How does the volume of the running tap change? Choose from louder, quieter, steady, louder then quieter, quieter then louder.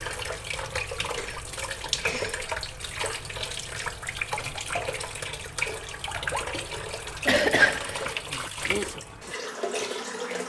steady.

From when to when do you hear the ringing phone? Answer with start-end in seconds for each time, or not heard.
not heard.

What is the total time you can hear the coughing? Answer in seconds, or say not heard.
3 s.